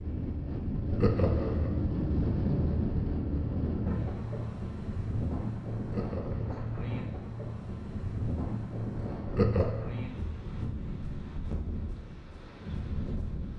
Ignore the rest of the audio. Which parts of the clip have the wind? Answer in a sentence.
You can hear the wind from 0.0 to 13.5 s.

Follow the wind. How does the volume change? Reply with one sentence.
The loudness of the wind goes down.